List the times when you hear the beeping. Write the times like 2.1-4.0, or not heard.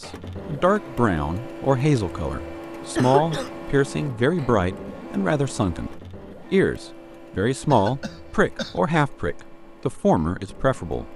not heard.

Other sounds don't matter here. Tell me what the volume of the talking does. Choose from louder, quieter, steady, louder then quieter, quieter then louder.
steady.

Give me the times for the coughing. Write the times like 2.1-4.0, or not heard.
3.0-3.5, 7.7-8.8.